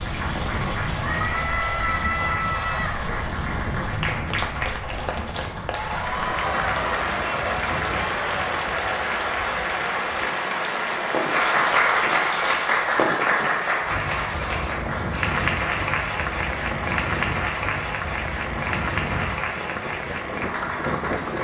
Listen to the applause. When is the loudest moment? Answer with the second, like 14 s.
12 s.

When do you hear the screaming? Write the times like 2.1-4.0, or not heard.
1.0-3.0.